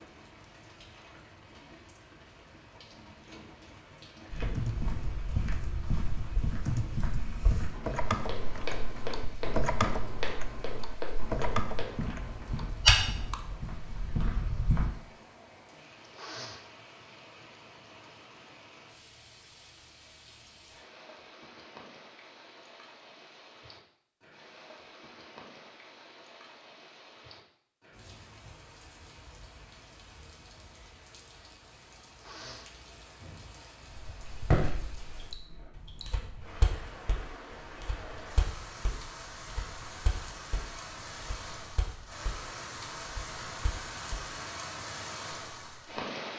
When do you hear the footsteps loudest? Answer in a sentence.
The loudest moment of the footsteps is at 13 seconds.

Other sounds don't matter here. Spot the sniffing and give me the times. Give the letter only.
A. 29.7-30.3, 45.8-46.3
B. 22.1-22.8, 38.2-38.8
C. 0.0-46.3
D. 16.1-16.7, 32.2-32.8
D.